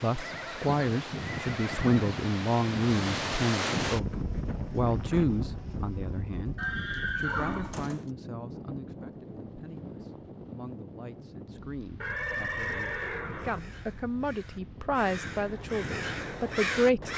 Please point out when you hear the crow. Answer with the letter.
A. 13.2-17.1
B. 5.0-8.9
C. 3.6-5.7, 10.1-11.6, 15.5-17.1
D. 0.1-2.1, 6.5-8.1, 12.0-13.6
A.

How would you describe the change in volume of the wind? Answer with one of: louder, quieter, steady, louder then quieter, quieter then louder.
quieter.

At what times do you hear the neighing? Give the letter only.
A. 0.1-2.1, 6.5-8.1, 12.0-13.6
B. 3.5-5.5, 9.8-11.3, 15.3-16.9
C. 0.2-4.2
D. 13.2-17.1
A.